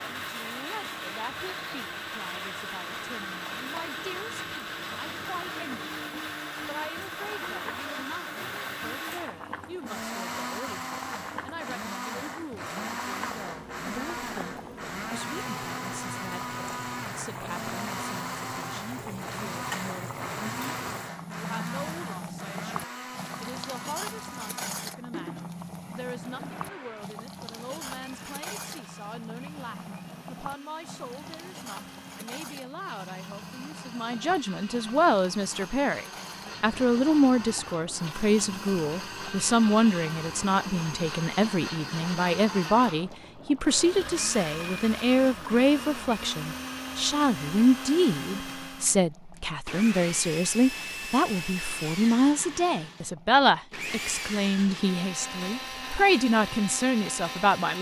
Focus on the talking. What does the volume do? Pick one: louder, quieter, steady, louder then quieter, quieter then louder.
louder.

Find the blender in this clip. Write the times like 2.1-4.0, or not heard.
0.0-57.7.